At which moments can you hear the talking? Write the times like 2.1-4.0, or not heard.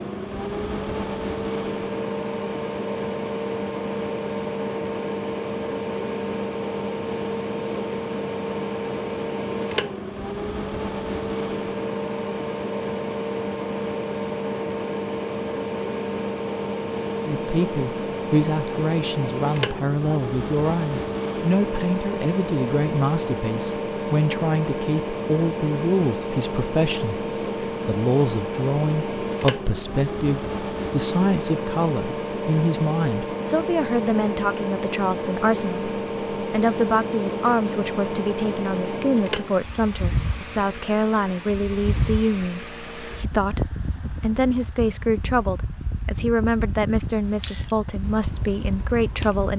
17.2-49.5.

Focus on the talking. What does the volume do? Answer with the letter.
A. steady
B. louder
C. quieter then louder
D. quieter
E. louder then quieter
A.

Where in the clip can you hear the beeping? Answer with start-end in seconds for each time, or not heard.
not heard.